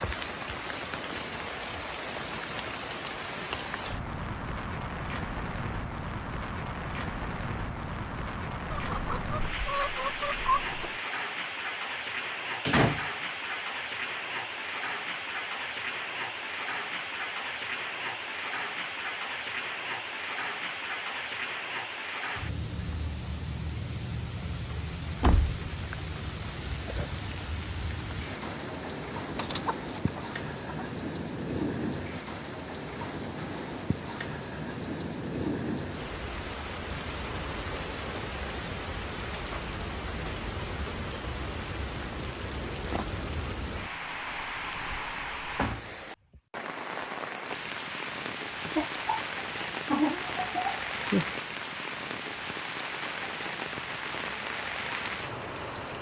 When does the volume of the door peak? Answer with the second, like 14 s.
13 s.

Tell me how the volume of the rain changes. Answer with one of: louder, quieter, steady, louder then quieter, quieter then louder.
steady.